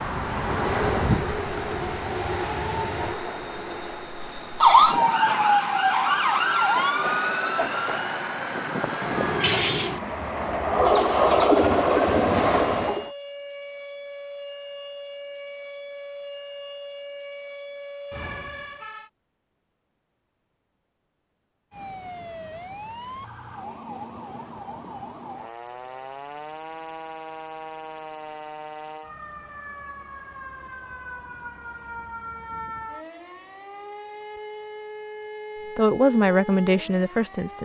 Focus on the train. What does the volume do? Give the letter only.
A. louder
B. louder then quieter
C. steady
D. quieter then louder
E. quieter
D.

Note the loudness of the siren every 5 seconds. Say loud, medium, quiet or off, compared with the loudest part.
loud, loud, quiet, quiet, quiet, quiet, quiet, quiet.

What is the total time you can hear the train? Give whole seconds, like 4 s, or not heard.
13 s.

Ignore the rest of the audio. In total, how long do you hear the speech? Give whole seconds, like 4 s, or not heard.
2 s.